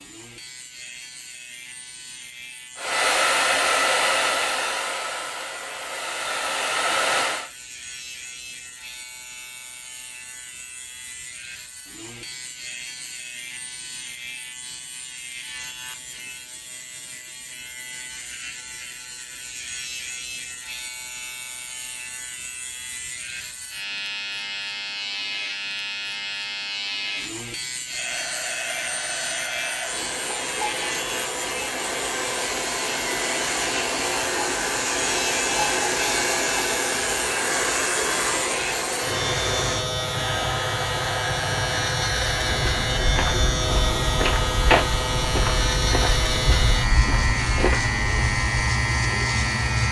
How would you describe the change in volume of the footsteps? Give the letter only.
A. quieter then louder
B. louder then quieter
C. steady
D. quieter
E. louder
B.